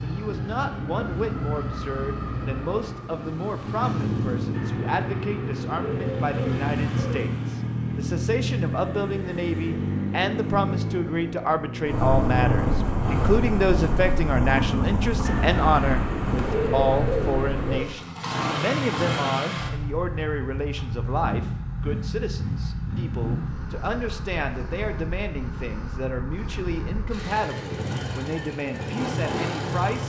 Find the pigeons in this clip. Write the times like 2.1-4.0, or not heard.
4.5-7.2, 15.2-17.9.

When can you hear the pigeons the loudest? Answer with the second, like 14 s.
17 s.